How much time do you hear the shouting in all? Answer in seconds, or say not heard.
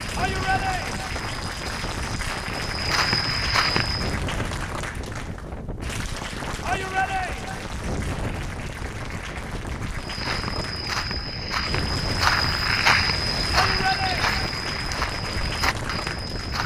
3 s.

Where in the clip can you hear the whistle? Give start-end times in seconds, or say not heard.
not heard.